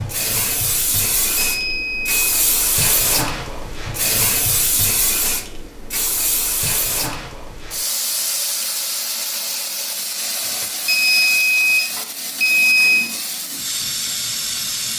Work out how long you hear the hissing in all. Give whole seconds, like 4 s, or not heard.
15 s.